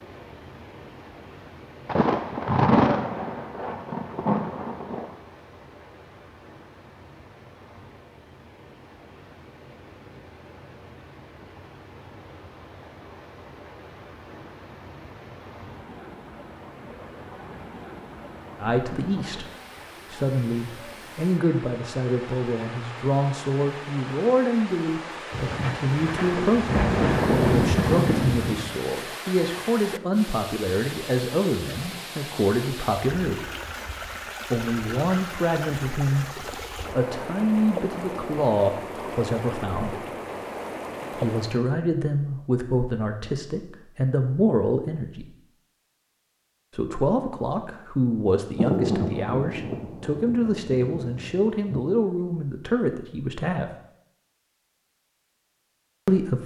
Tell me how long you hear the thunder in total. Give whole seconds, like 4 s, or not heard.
10 s.